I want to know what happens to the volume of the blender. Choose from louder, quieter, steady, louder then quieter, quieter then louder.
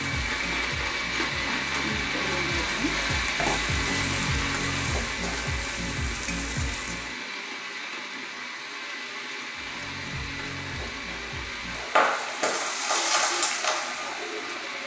quieter.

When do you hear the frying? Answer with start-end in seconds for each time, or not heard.
0.0-7.2, 9.6-14.8.